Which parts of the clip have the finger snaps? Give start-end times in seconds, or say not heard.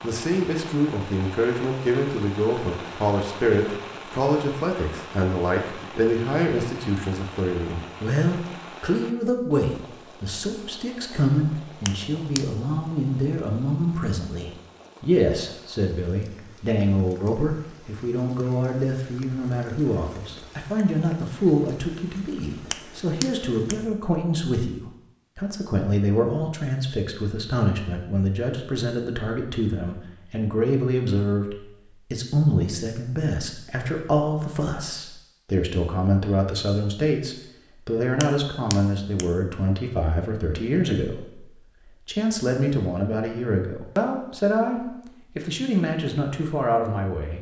11.8-12.4, 22.7-23.8, 38.2-39.2.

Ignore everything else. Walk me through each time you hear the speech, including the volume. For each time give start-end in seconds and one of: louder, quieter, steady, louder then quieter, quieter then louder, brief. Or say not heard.
0.0-41.5 steady
42.0-47.3 steady.